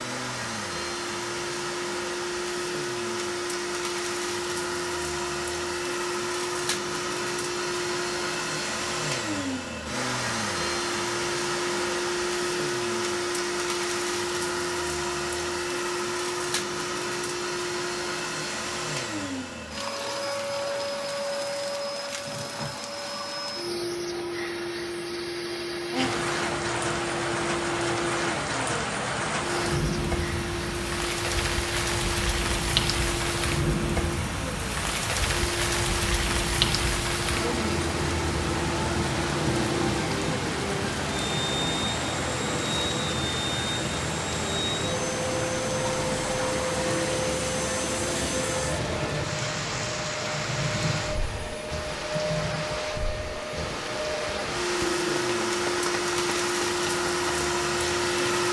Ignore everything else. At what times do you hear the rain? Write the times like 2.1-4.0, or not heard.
25.9-58.4.